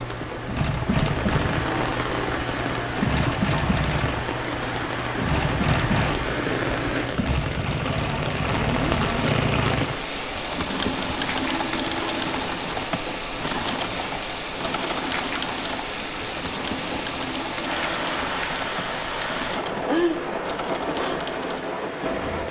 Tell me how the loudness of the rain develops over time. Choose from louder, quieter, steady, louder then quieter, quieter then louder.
steady.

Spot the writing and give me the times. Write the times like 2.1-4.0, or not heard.
not heard.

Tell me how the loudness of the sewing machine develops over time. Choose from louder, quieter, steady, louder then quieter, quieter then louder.
quieter.